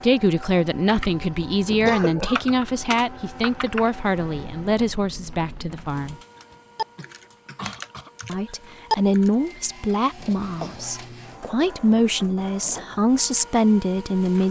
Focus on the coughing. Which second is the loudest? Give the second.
2 s.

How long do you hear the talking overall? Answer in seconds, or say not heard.
12 s.